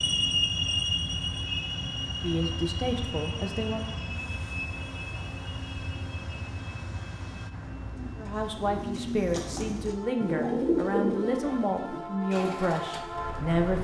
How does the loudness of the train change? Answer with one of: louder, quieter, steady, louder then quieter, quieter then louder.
quieter then louder.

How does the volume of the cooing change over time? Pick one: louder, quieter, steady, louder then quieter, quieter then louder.
louder then quieter.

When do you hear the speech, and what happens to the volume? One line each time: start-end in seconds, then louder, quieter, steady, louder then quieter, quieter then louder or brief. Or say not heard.
2.1-3.9 brief
8.2-13.7 steady.